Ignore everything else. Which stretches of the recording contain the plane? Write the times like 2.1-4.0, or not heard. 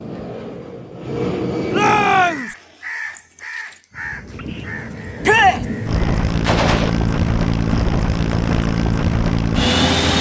0.0-2.5, 3.9-10.1.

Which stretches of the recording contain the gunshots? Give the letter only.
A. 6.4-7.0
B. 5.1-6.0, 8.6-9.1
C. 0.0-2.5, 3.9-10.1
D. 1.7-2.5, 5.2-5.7
A.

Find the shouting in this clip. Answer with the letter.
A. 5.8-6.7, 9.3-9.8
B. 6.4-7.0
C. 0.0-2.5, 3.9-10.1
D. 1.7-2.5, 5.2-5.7
D.